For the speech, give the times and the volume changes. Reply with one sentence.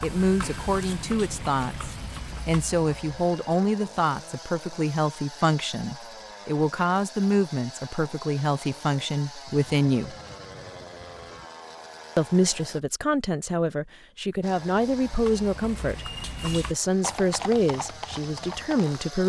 You can hear the speech from 0.0 to 10.2 s, at a steady volume; and from 12.2 to 19.2 s, at a steady volume.